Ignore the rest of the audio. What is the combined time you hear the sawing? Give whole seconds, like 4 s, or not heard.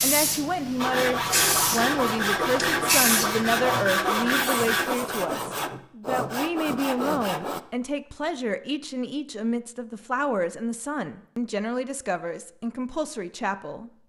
7 s.